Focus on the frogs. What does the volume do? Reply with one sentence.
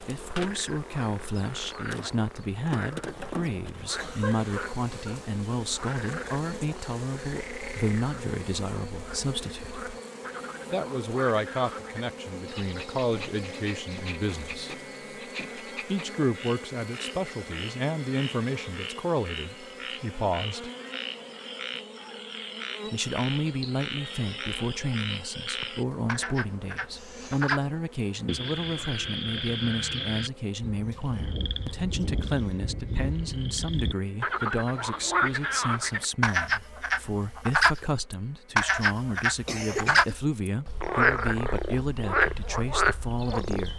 The volume of the frogs goes up.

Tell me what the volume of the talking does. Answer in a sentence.
The loudness of the talking stays about the same.